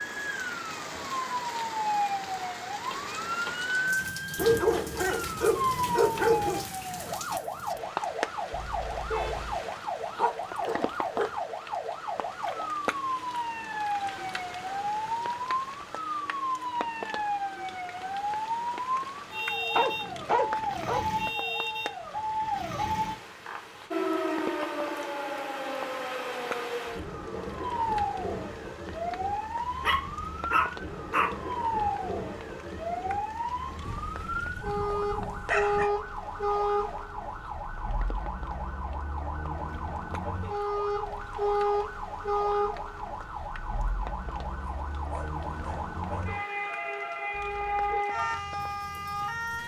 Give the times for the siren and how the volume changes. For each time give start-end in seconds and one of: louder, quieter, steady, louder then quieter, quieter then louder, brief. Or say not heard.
0.0-49.6 steady.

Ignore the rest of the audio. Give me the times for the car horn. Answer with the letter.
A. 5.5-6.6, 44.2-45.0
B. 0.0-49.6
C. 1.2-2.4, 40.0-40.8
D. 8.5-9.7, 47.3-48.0
D.